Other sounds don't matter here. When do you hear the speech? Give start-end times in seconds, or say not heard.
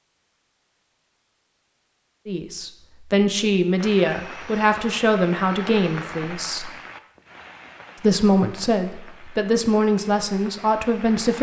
2.2-6.7, 8.0-11.3.